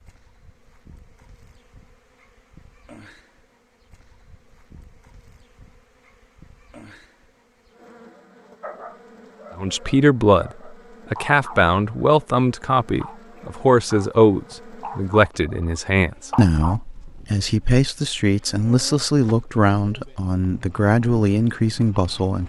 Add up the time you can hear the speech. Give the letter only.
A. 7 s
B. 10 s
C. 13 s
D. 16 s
C.